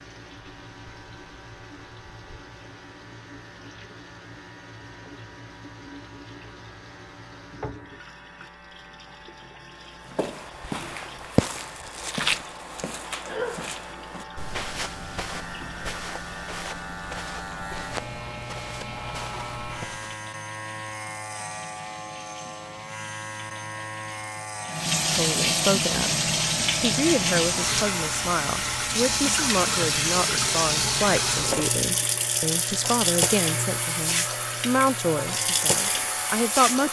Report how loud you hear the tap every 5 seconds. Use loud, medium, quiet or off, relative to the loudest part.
quiet, quiet, quiet, quiet, quiet, loud, loud, loud.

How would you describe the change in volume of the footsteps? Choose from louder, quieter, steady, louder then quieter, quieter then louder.
quieter.